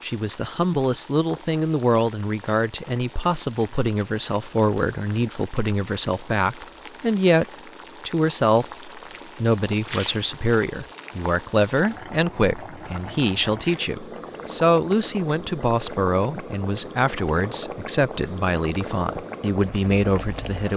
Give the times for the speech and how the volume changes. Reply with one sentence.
The speech can be heard from 0.0 to 7.5 s, at a steady volume; and from 8.1 to 20.7 s, at a steady volume.